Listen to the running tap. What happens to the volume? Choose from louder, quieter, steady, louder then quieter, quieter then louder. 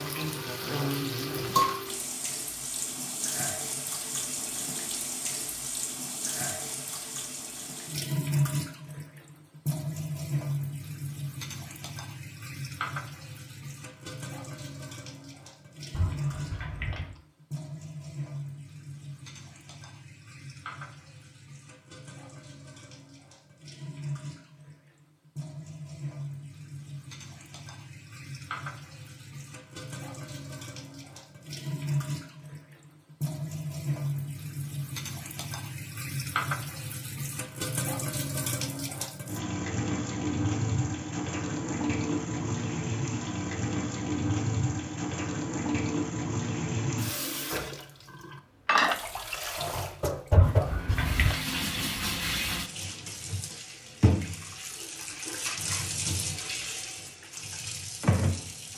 quieter then louder.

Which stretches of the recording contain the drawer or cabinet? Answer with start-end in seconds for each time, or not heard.
15.9-17.1, 50.3-51.4.